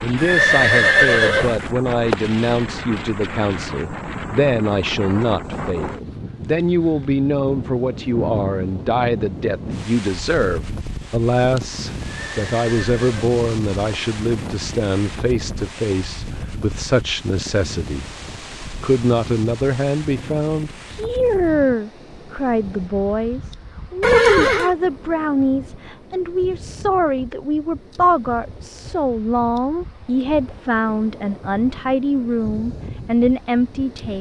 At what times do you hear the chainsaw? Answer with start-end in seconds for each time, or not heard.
not heard.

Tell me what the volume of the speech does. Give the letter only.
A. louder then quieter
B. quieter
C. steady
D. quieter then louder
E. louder
C.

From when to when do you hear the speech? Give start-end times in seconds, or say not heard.
0.0-18.1, 18.8-34.1.